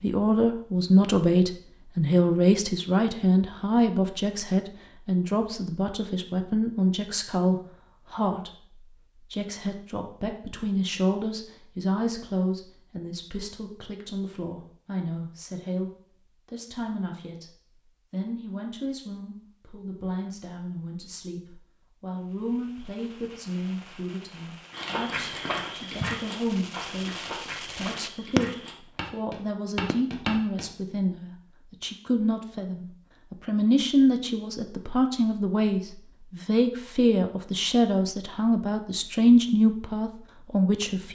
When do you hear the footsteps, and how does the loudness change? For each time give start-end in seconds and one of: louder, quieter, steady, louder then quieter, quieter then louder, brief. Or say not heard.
24.7-30.6 quieter then louder.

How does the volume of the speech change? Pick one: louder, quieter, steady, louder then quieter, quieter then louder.
quieter then louder.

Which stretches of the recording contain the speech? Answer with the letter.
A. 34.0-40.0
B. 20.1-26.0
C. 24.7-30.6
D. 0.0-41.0
D.